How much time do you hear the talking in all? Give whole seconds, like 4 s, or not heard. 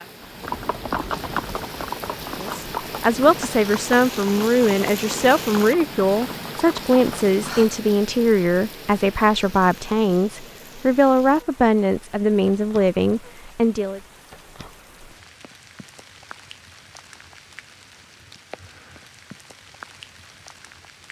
12 s.